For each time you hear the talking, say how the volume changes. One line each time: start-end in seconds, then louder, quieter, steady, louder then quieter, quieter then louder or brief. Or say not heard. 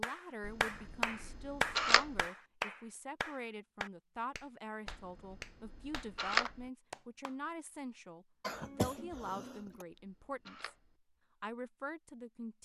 0.0-10.8 steady
11.4-12.5 brief.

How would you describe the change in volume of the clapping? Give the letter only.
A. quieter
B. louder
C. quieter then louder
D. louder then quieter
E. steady
A.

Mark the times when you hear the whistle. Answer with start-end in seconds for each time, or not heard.
not heard.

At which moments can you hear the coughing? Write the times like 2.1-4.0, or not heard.
8.4-9.8.